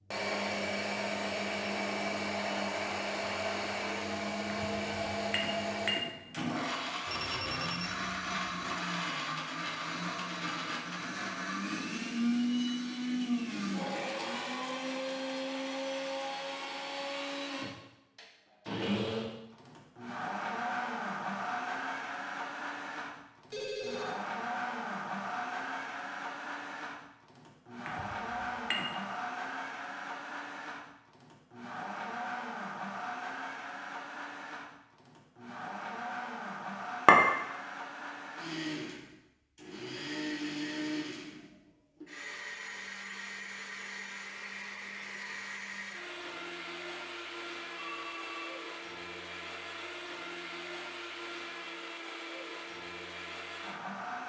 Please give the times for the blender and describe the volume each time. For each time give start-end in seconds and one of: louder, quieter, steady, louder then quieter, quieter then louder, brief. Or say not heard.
0.1-54.2 quieter.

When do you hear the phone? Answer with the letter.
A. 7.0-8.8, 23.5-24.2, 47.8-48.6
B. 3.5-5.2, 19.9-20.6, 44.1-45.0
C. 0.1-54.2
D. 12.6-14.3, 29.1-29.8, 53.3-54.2
A.